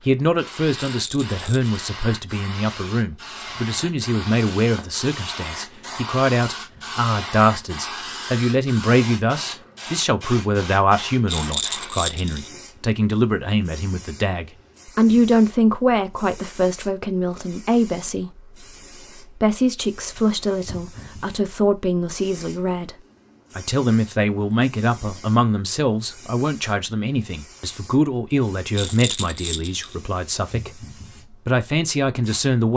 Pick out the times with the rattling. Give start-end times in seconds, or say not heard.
0.8-1.7, 11.2-12.5, 28.8-29.9.